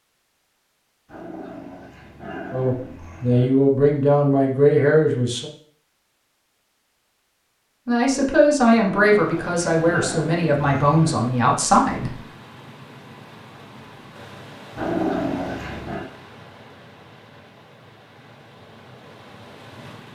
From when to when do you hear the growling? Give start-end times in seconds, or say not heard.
1.1-3.5, 8.7-11.3, 14.8-16.1.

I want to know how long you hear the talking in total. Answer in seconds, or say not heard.
7 s.